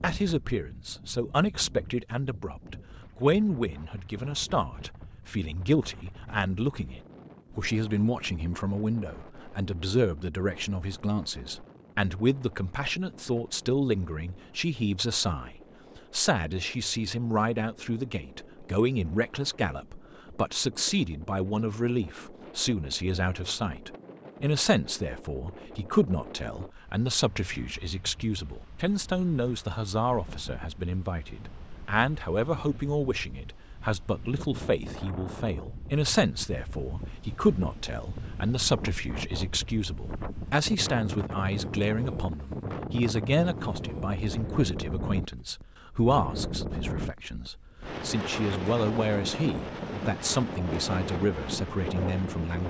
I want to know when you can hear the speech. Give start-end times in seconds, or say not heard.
0.0-52.6.